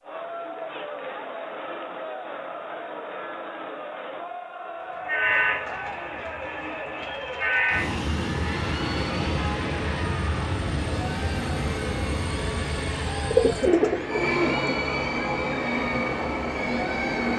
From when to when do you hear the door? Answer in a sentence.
You can't hear the door here.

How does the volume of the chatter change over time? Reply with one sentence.
The loudness of the chatter stays about the same.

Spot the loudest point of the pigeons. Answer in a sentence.
The loudest moment of the pigeons is at 14 seconds.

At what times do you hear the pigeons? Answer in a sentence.
You can hear the pigeons from 13.3 to 14.8 s.